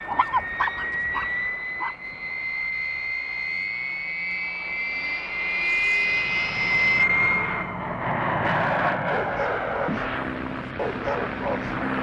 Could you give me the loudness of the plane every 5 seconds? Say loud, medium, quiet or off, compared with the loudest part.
medium, loud, medium.